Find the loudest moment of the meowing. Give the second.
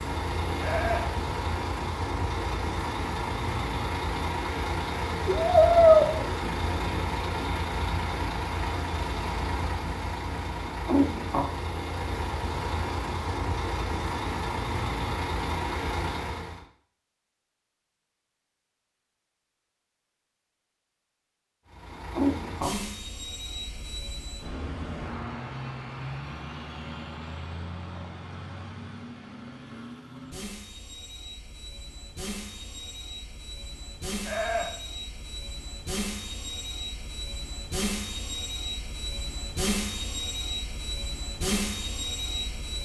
6 s.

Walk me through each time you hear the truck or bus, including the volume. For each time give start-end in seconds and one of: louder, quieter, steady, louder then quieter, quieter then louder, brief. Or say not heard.
0.0-16.6 steady
21.7-42.8 quieter then louder.